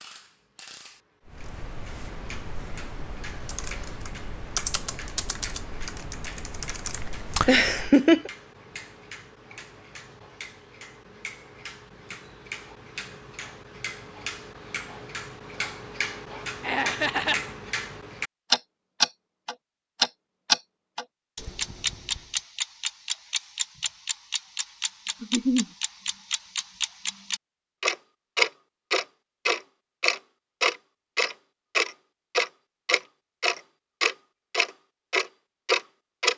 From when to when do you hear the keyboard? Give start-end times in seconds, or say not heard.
1.2-7.9.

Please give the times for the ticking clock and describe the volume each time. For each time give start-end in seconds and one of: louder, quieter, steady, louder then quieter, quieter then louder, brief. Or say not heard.
0.0-36.3 louder.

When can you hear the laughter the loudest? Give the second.
8 s.